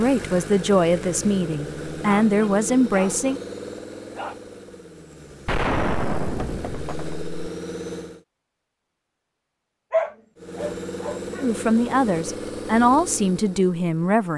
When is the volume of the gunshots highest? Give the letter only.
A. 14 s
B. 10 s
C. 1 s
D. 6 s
D.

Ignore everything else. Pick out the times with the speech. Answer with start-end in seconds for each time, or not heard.
0.0-3.4, 11.4-14.3.